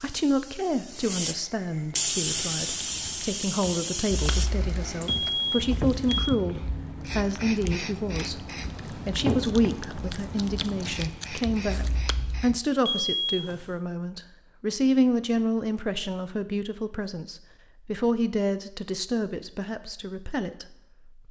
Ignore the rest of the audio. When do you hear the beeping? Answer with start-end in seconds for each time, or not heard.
5.0-6.3, 12.8-13.7.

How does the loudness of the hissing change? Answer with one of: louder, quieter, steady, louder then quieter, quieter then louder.
quieter.